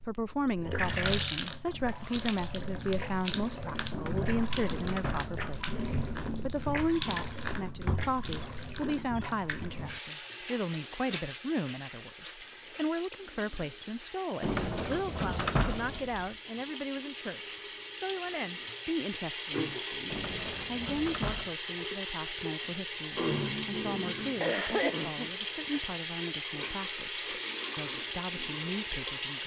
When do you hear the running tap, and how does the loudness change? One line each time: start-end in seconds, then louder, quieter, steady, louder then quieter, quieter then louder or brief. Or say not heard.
0.0-29.4 quieter then louder.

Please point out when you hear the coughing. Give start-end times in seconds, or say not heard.
24.4-25.8.